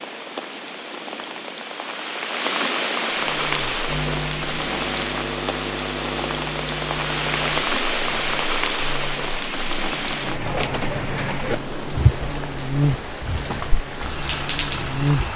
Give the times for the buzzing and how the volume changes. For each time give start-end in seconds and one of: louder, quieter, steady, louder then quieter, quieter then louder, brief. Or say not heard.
3.1-15.3 quieter then louder.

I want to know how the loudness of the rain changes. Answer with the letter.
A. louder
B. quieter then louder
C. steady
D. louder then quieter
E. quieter
C.